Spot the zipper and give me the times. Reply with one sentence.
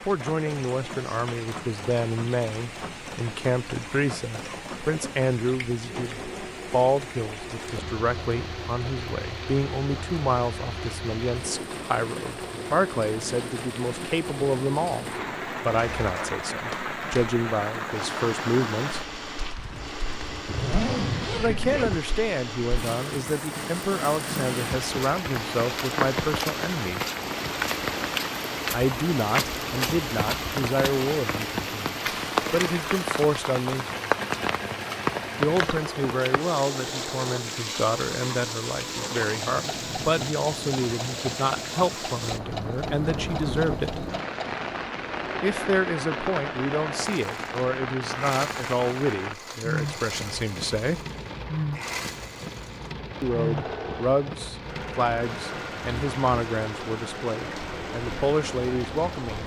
You can hear the zipper from 19.6 to 22.1 s.